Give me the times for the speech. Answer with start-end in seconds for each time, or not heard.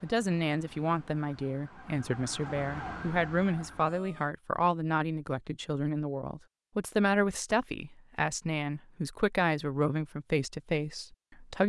0.0-11.6.